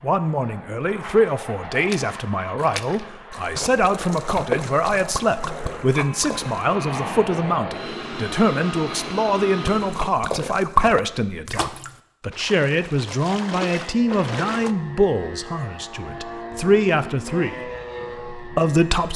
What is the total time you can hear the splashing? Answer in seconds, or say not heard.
10 s.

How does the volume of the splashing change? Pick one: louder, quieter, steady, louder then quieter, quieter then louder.
louder then quieter.